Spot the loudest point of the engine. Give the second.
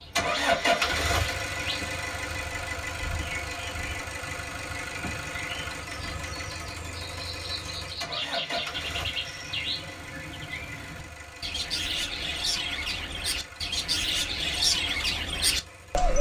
1 s.